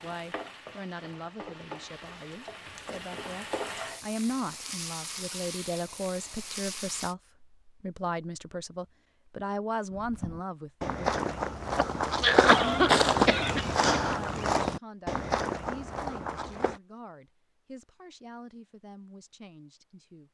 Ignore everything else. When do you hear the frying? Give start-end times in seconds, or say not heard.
0.0-7.2.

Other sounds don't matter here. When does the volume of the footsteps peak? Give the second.
13 s.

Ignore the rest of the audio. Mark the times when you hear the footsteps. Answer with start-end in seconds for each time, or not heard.
9.9-16.8.